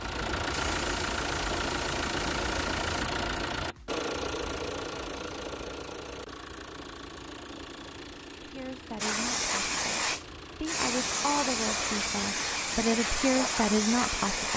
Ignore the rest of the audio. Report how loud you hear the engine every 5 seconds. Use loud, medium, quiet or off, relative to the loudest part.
loud, medium, quiet.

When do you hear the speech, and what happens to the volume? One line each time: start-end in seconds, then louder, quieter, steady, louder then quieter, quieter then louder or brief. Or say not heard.
8.4-14.5 louder.